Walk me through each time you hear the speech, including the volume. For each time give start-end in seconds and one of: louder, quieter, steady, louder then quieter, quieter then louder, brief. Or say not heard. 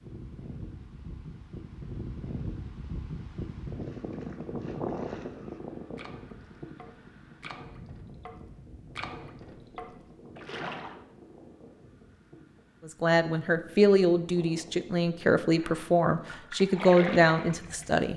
12.8-18.1 quieter then louder.